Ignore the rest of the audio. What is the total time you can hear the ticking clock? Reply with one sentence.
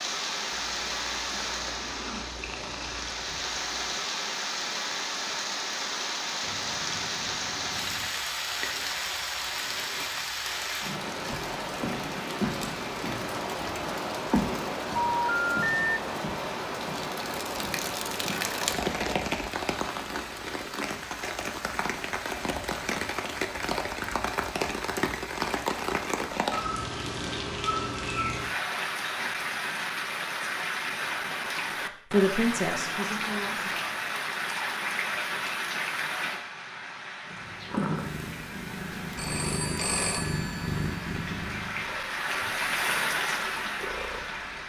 The ticking clock can't be heard in this clip.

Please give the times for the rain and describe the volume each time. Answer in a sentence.
You can hear the rain from 0.0 to 44.6 s, at a steady volume.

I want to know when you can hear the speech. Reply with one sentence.
The speech can be heard from 32.1 to 33.7 s.